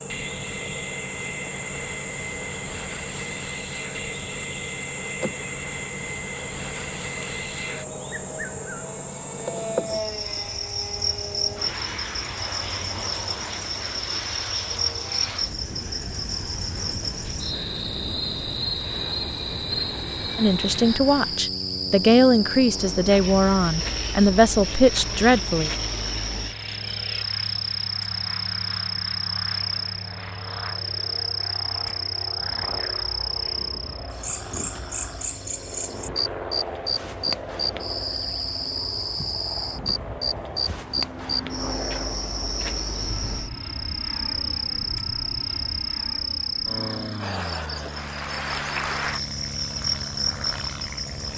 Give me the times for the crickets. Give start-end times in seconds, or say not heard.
0.0-51.3.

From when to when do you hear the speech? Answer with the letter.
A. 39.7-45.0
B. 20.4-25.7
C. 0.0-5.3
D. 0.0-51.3
B.